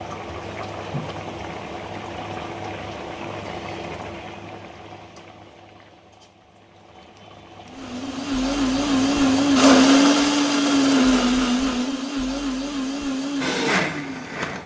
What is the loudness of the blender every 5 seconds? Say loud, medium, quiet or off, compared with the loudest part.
off, loud, loud.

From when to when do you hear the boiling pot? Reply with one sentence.
The boiling pot can be heard from 0.0 to 9.8 s.